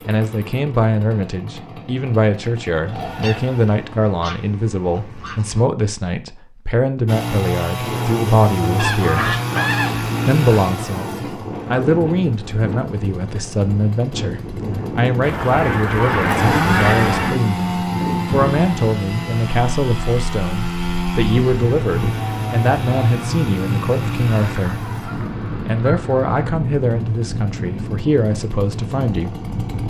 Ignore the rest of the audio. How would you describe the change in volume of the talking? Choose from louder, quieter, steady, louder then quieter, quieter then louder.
steady.